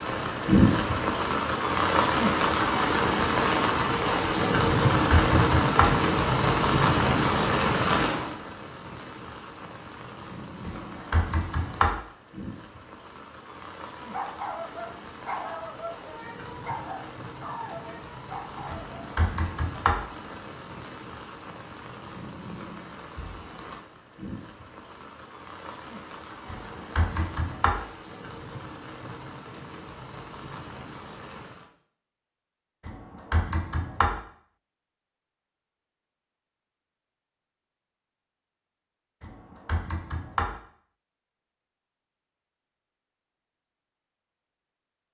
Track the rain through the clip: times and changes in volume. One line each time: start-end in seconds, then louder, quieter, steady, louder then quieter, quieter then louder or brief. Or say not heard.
0.0-31.7 quieter.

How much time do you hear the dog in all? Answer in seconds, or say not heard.
5 s.